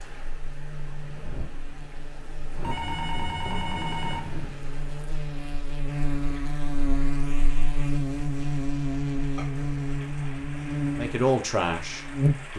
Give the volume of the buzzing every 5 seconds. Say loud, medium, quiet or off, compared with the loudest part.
quiet, loud, loud.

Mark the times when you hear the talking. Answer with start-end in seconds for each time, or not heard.
10.9-12.5.